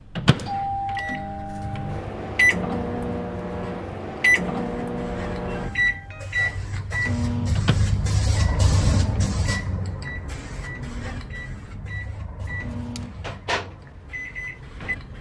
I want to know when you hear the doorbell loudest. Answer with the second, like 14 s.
1 s.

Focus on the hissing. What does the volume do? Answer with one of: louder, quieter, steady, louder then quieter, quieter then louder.
louder then quieter.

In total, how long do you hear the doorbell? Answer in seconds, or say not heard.
3 s.